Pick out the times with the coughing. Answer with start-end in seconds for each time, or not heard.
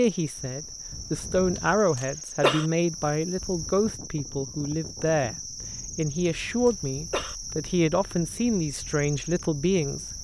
1.9-2.6, 6.7-7.3.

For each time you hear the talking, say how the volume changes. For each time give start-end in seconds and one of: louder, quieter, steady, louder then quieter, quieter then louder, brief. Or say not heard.
0.0-10.1 steady.